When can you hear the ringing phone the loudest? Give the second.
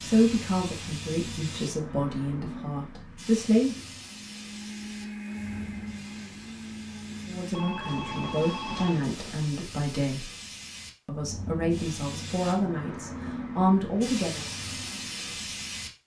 9 s.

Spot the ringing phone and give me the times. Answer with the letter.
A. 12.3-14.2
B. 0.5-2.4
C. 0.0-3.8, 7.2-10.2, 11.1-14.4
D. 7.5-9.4
D.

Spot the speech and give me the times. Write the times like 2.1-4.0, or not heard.
0.0-3.8, 7.2-10.2, 11.1-14.4.